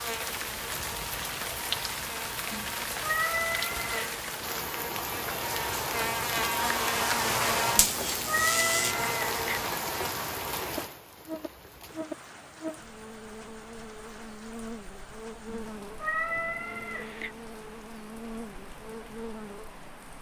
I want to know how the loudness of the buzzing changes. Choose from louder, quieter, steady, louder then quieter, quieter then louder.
louder then quieter.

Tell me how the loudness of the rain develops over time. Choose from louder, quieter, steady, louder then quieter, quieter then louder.
quieter.